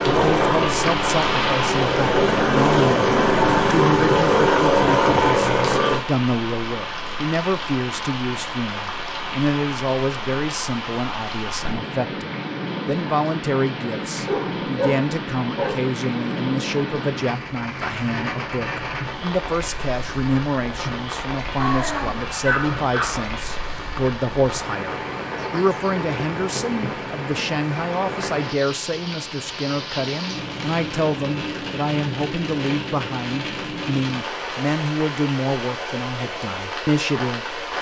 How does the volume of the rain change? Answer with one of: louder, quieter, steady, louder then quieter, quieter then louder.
steady.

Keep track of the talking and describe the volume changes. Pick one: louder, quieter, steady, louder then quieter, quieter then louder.
steady.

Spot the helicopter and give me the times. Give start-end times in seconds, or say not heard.
0.0-6.0.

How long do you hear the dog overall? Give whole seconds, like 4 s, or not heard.
3 s.